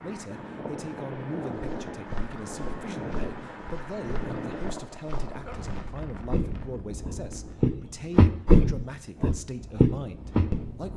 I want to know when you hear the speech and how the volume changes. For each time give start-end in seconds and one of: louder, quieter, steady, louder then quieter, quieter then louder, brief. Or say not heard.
0.0-10.9 steady.